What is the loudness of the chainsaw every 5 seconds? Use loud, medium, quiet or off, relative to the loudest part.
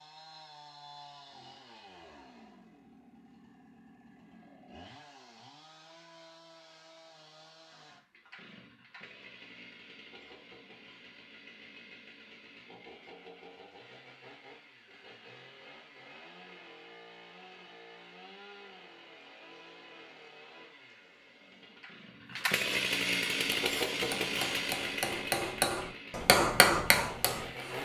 quiet, quiet, quiet, quiet, loud, medium.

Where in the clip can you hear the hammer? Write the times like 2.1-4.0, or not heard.
23.4-27.8.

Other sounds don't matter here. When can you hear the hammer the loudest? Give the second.
26 s.